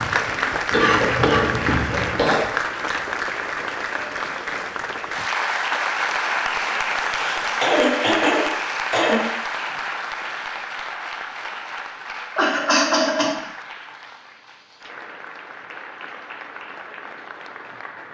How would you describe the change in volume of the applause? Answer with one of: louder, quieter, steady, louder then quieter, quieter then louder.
quieter.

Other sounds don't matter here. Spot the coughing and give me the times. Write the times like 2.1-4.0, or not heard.
0.7-2.5, 7.0-9.4, 12.3-13.3.